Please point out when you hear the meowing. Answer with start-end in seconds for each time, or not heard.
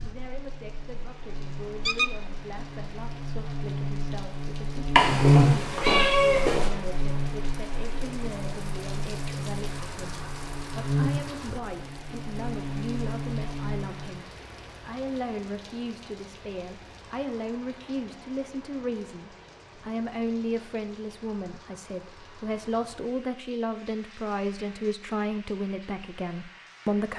5.0-6.7.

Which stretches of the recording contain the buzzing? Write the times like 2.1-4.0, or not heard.
0.0-14.2.